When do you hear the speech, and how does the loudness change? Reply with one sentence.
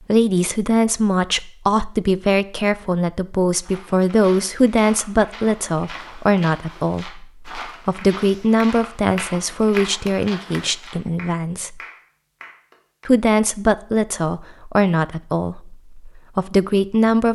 You can hear the speech from 0.1 to 11.8 s, at a steady volume; and from 13.1 to 17.3 s, getting quieter then louder.